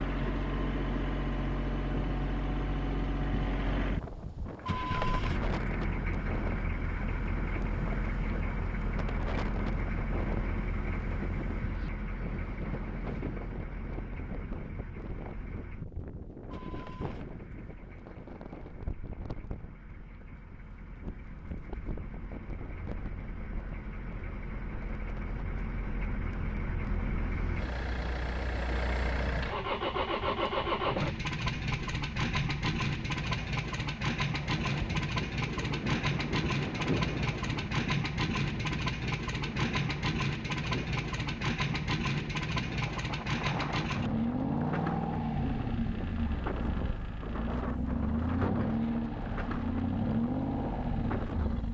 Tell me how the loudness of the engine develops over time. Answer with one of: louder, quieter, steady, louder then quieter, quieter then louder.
quieter then louder.